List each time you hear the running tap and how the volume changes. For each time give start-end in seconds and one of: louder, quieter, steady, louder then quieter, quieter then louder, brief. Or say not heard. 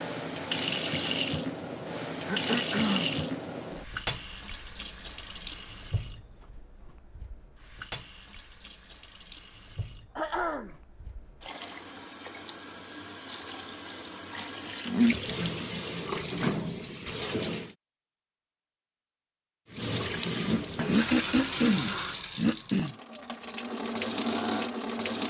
0.0-17.8 quieter then louder
19.7-25.2 quieter then louder.